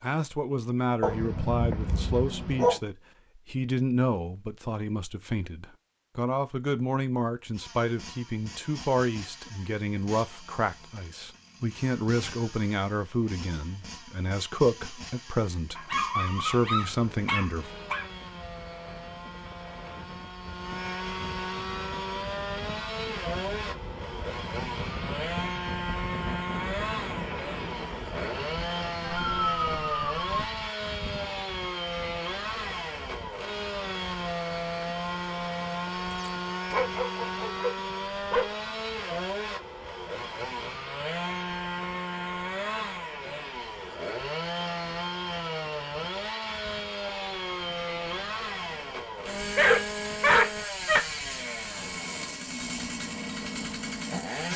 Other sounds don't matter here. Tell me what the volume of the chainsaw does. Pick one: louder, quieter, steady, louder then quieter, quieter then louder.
louder.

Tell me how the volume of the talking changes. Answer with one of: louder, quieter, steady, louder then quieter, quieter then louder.
steady.